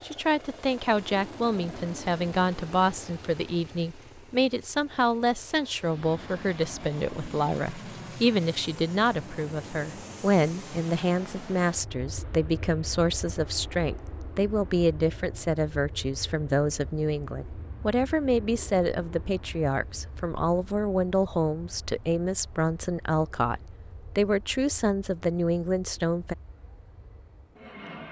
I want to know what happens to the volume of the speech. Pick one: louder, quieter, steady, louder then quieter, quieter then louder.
steady.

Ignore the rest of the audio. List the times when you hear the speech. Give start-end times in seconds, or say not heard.
0.0-26.4.